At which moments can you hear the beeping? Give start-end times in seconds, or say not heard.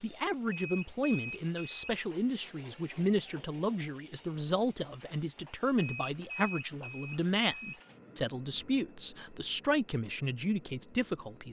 0.5-1.9, 5.8-7.8.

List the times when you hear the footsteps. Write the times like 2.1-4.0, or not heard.
not heard.